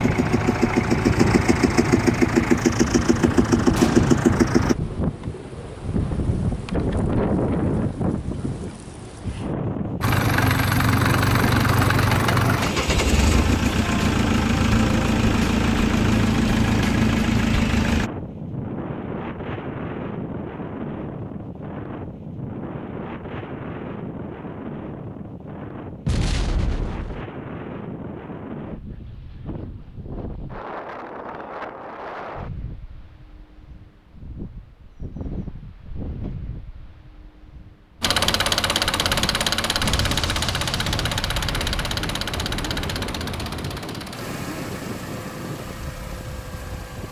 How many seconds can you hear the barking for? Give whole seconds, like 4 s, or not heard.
not heard.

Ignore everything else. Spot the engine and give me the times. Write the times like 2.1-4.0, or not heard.
0.0-4.8, 10.0-18.1, 38.0-47.0.